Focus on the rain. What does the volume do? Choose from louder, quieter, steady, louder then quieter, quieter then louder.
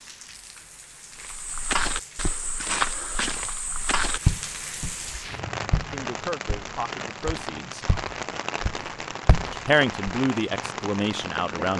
louder.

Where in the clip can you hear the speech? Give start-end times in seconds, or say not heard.
5.8-7.8, 9.5-11.7.